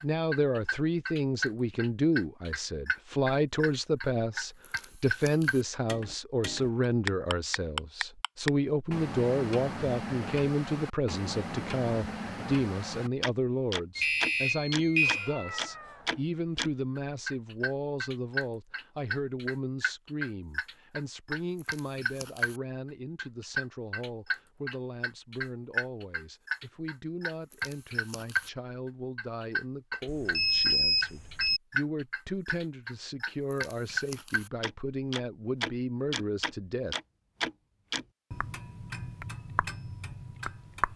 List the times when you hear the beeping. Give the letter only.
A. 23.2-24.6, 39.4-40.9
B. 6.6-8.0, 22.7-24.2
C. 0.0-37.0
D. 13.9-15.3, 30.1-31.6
D.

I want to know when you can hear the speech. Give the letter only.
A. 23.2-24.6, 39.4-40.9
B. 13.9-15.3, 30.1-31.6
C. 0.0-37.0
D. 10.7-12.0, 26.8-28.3
C.